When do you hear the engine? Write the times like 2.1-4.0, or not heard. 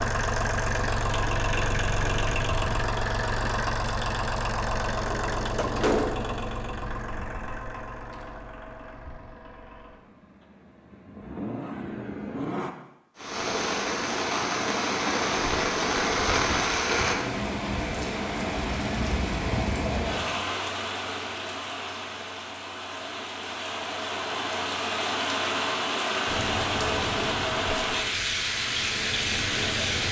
0.0-12.7, 26.2-30.0.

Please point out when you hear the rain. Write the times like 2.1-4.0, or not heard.
13.2-30.0.